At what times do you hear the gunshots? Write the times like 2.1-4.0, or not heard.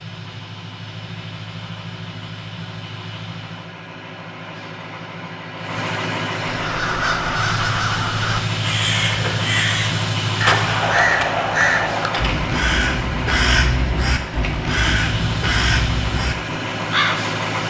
10.3-12.3.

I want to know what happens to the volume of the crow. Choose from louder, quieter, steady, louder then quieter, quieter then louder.
steady.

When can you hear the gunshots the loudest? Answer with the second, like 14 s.
11 s.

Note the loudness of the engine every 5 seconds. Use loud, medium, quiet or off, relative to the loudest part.
medium, loud, loud, loud.